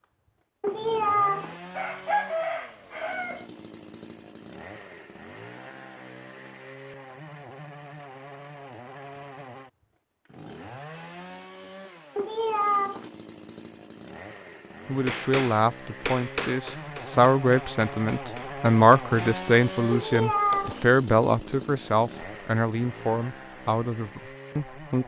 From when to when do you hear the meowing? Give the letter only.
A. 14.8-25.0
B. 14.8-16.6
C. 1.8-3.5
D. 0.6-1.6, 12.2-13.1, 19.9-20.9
D.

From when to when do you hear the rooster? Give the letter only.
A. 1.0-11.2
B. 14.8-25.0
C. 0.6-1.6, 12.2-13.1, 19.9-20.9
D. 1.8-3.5
D.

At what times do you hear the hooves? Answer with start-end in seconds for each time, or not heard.
not heard.